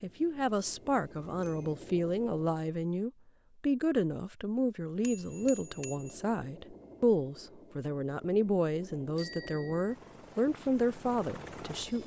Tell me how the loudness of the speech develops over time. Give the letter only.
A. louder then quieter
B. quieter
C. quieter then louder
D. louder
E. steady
E.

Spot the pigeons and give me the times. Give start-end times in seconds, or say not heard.
not heard.